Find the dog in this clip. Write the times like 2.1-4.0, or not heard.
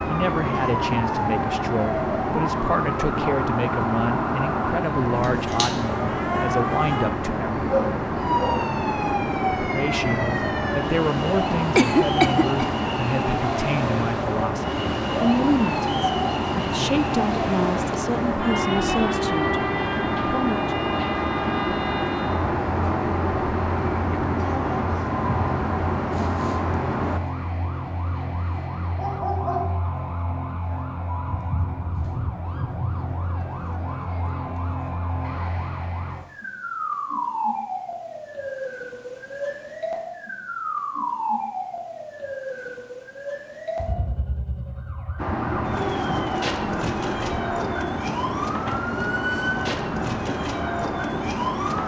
7.7-8.7, 28.9-29.8.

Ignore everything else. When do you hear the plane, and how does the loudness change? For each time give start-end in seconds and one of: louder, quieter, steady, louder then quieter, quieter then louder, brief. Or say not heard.
0.0-27.2 steady
45.1-51.8 steady.